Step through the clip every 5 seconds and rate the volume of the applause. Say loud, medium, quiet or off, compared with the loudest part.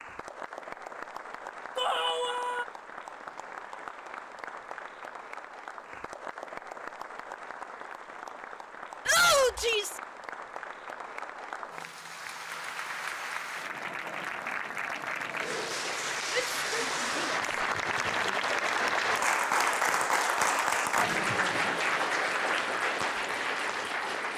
quiet, quiet, medium, loud, loud.